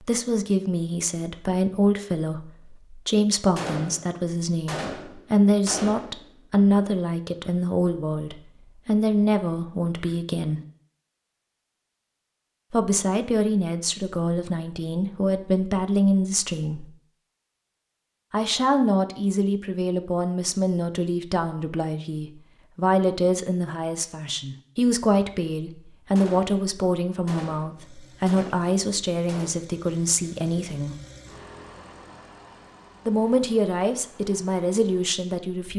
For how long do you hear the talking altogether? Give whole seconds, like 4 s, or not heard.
30 s.